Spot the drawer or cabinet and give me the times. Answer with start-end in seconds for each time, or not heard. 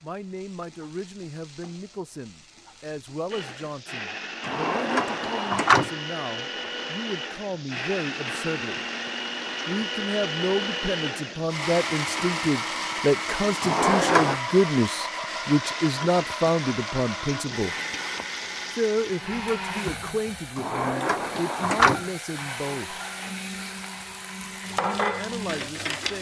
4.5-5.9, 13.6-14.4, 20.6-22.0.